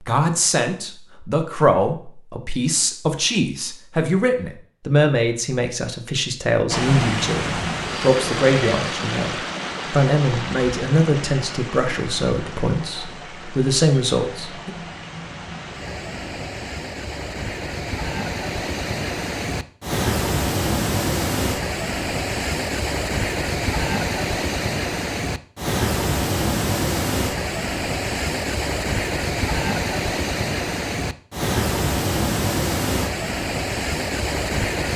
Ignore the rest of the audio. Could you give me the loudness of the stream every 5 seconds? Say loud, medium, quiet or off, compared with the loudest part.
off, loud, medium, medium, loud, loud, loud.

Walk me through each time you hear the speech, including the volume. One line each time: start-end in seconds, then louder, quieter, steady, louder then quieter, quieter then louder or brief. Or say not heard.
0.0-14.7 steady.